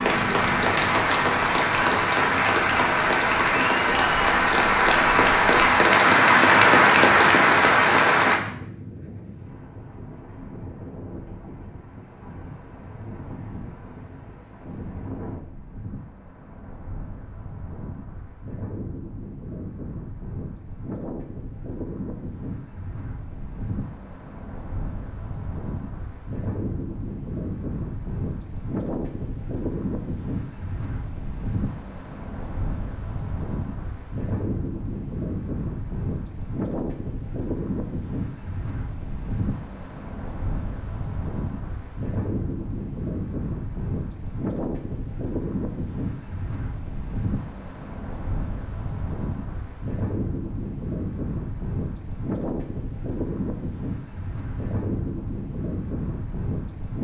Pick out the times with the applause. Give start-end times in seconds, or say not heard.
0.0-8.4.